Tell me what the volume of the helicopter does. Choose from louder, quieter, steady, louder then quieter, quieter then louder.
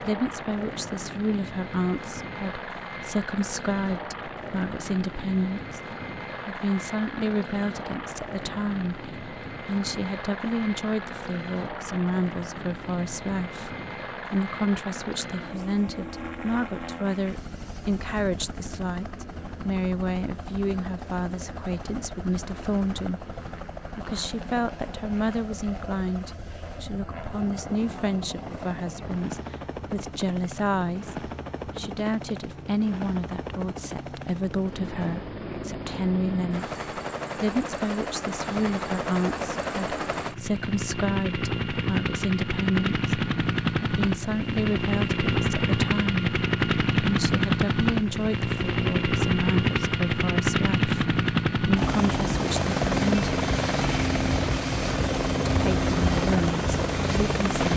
louder.